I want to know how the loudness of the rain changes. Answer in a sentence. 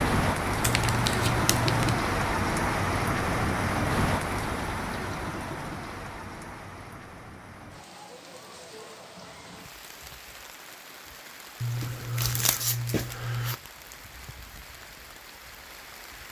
The volume of the rain goes down.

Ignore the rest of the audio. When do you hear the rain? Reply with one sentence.
You can hear the rain from 0.0 to 16.2 s.